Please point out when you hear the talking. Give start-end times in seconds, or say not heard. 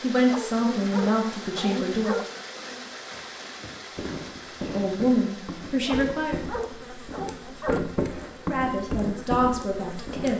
0.0-2.2, 4.6-6.4, 8.4-10.3.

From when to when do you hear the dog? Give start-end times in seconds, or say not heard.
0.2-2.2, 5.8-7.8.